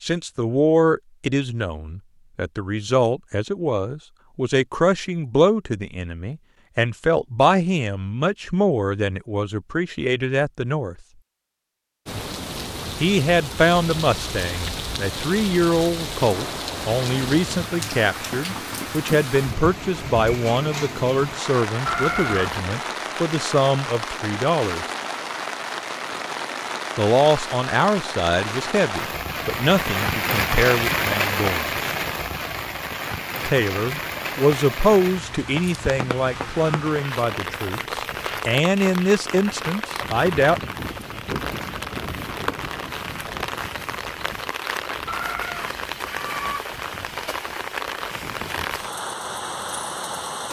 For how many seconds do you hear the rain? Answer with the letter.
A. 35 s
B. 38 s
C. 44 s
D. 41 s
B.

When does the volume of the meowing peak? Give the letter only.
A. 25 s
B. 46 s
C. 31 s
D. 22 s
D.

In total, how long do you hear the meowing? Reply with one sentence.
You can hear the meowing for 2 seconds altogether.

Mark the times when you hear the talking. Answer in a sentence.
The talking can be heard from 0.0 to 10.9 s, from 13.0 to 24.9 s, from 26.9 to 31.7 s and from 33.5 to 40.7 s.